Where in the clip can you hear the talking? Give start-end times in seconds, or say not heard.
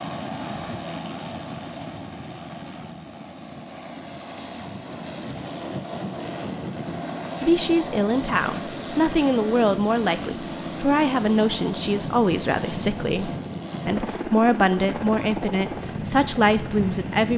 7.4-17.3.